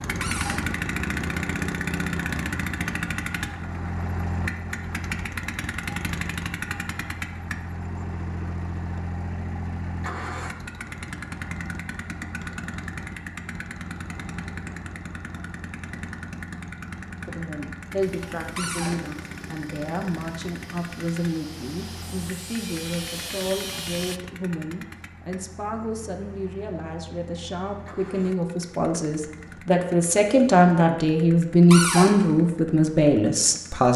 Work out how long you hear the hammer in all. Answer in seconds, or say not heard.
not heard.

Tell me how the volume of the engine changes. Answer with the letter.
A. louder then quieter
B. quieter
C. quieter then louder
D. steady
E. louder
B.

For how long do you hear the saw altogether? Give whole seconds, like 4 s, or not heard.
6 s.